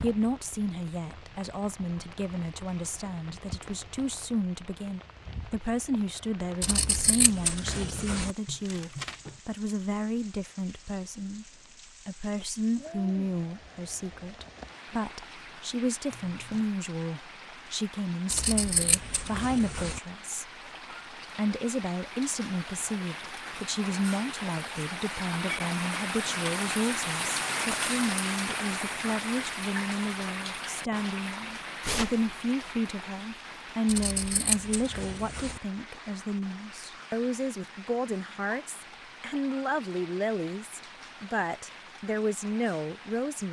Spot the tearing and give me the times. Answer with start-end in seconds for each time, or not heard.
8.4-9.4, 16.1-16.6, 31.8-32.2.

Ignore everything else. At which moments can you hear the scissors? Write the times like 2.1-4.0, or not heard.
6.6-8.3, 18.3-20.0, 33.9-35.6.